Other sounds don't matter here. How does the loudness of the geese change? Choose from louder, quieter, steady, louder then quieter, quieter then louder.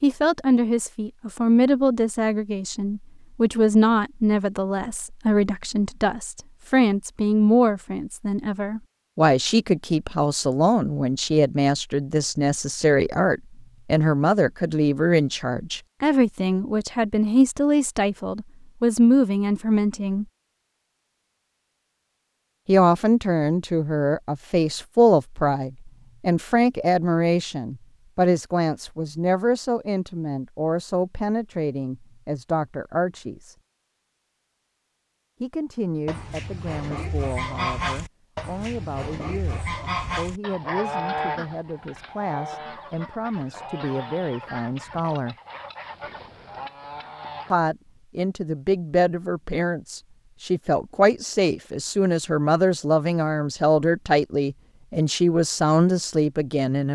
quieter.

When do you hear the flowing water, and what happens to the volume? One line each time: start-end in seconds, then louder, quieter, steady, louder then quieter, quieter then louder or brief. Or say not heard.
not heard.